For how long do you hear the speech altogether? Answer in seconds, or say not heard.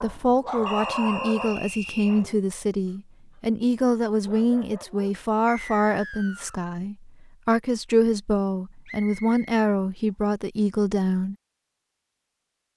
11 s.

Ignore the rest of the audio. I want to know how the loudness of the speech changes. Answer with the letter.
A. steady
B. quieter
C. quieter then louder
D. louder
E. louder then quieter
A.